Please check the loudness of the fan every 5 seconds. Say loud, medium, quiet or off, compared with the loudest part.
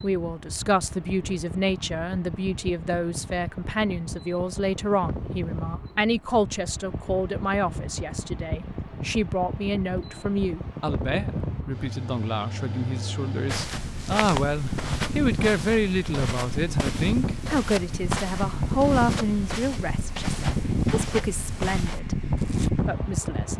medium, medium, medium, loud, loud.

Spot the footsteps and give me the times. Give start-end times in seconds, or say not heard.
13.4-22.7.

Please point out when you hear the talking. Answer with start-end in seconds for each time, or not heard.
0.0-22.2, 22.9-23.5.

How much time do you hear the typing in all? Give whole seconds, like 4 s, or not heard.
not heard.